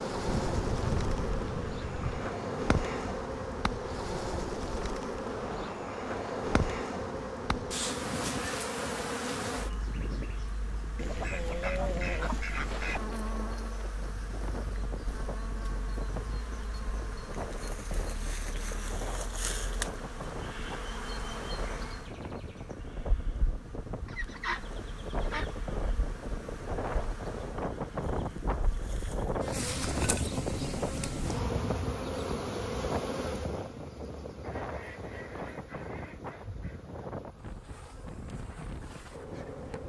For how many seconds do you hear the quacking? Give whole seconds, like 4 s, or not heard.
8 s.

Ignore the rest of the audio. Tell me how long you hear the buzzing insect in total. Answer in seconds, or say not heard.
40 s.